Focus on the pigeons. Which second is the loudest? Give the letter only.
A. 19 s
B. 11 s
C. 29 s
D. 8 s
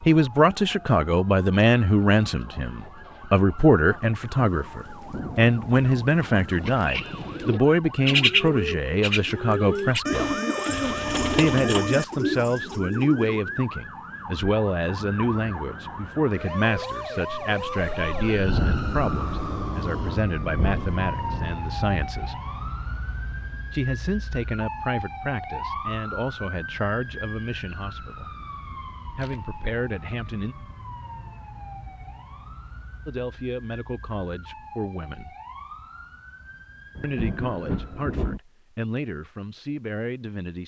D.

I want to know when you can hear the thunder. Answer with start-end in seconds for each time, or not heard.
3.9-7.5, 17.3-21.6, 37.0-38.4.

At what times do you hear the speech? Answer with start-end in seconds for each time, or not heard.
0.0-10.3, 11.3-22.4, 23.7-28.3, 29.1-30.6, 33.0-35.4, 37.0-40.6.